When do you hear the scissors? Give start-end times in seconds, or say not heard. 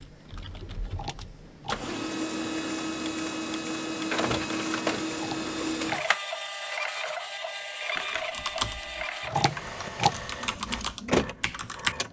0.8-1.9, 5.1-6.1, 9.2-10.2.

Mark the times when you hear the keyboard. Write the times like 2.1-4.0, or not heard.
0.0-1.9, 8.0-11.9.